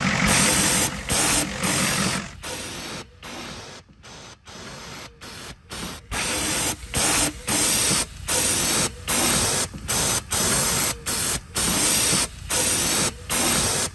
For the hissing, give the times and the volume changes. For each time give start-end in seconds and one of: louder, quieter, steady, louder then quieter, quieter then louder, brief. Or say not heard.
0.1-13.9 quieter then louder.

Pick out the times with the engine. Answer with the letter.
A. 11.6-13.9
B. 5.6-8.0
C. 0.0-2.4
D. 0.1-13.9
C.